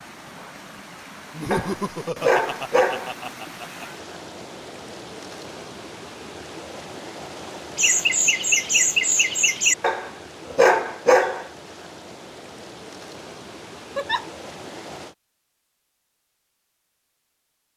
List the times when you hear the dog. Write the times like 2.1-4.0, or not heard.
1.5-3.1, 9.8-11.4.